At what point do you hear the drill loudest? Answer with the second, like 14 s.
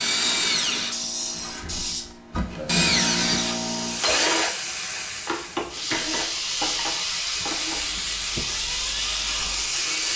3 s.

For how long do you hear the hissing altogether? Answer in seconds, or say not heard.
10 s.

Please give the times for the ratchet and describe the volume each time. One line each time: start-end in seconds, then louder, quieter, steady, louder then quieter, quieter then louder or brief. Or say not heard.
not heard.